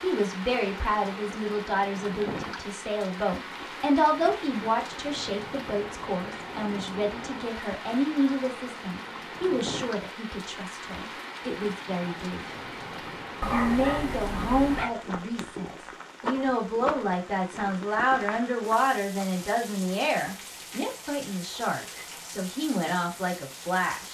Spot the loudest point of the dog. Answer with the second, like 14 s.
14 s.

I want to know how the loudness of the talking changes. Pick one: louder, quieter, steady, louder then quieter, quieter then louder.
steady.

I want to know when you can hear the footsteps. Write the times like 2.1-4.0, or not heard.
not heard.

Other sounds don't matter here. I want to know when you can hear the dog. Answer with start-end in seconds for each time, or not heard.
13.4-14.9.